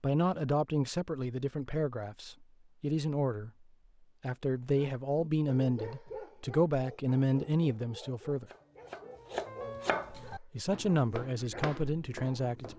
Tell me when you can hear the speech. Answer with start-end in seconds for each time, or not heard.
0.0-3.5, 4.2-8.4, 10.3-12.7.